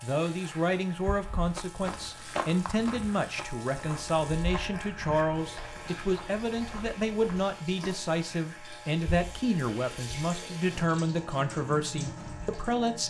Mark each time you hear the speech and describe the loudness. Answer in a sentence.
You can hear the speech from 0.0 to 13.0 s, at a steady volume.